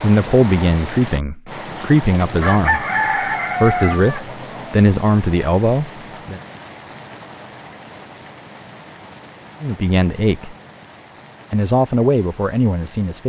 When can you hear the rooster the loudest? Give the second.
3 s.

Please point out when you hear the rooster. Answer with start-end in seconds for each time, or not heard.
2.2-4.8.